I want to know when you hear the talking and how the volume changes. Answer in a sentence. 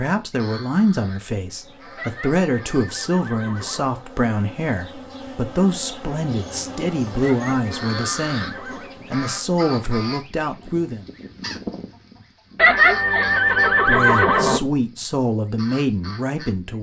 You can hear the talking from 0.0 to 11.1 s, at a steady volume; and briefly from 13.8 to 16.7 s.